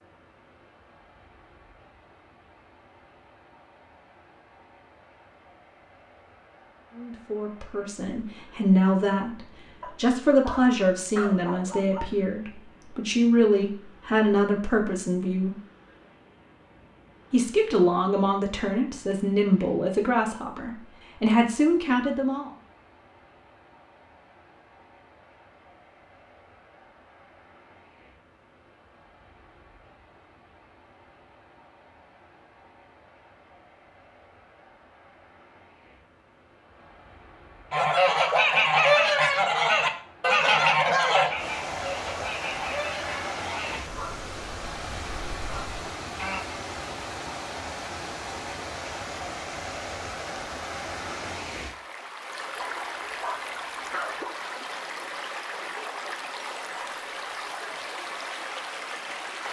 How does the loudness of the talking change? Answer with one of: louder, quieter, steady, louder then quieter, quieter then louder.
steady.